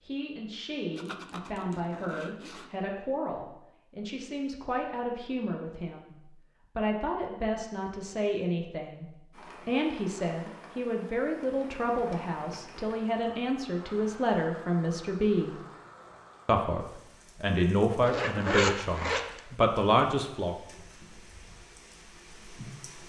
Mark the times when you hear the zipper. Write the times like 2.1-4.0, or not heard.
0.9-2.7, 18.0-19.4.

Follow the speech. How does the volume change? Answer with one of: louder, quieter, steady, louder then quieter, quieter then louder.
louder.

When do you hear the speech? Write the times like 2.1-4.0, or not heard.
0.0-15.6, 16.4-20.6.